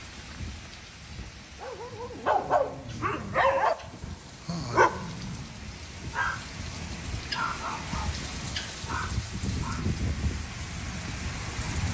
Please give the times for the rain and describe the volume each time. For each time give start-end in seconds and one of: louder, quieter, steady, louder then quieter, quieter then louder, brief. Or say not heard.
0.0-11.8 louder.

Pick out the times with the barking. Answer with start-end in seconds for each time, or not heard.
1.6-6.5, 7.3-8.2, 8.8-9.8.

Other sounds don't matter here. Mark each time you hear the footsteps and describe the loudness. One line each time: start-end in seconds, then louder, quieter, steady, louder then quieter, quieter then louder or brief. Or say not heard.
not heard.